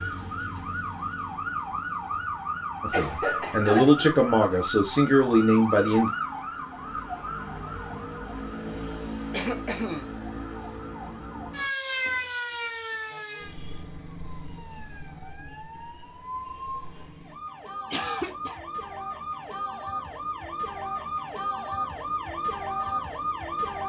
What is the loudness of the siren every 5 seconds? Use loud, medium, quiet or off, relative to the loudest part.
loud, loud, loud, medium, loud.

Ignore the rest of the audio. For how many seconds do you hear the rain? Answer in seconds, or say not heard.
not heard.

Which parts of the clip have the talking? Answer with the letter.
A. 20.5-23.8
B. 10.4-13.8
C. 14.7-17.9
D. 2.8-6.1
D.